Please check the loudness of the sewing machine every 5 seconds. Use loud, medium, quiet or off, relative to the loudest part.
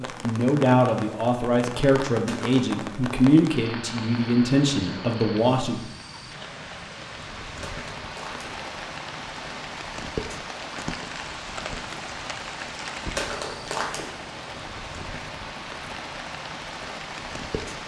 off, loud, loud, loud.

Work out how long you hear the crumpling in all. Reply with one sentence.
You can hear the crumpling for 2 seconds altogether.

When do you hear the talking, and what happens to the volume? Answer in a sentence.
The talking can be heard from 0.0 to 5.8 s, at a steady volume.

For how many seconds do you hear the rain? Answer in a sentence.
The rain can be heard for 18 seconds in total.